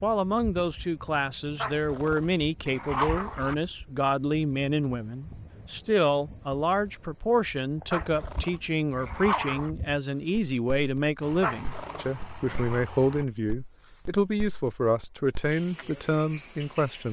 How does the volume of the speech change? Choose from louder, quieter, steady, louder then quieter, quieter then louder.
steady.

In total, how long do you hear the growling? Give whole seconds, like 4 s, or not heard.
5 s.